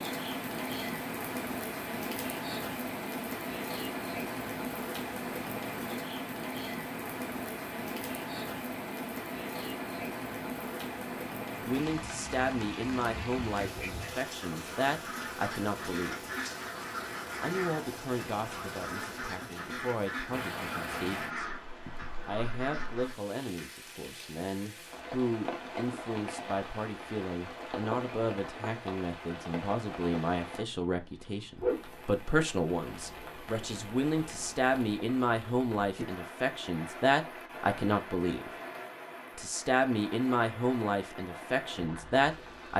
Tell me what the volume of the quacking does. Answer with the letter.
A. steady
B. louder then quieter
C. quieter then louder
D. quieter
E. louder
A.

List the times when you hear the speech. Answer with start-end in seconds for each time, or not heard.
11.6-16.2, 17.4-21.3, 22.2-38.5, 39.4-42.7.